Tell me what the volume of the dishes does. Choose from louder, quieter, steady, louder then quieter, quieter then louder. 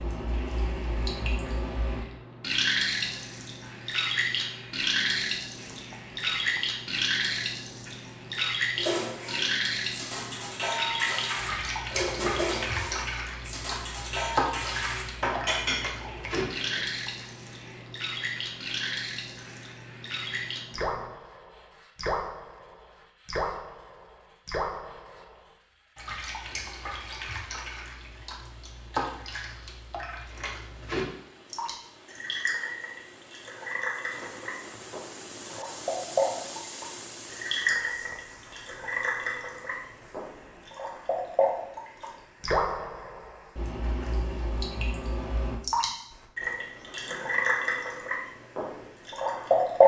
louder.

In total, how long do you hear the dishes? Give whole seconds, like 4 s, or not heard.
8 s.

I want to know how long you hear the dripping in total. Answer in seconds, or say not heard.
50 s.